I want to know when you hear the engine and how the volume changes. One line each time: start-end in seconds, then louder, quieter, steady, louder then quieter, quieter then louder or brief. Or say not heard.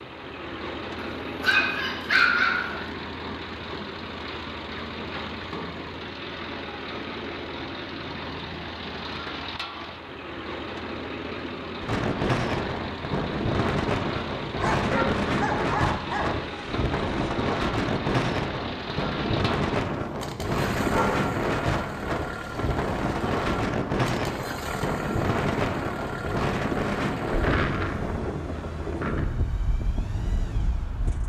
0.0-31.2 steady.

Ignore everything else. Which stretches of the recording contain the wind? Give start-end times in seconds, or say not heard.
11.8-31.2.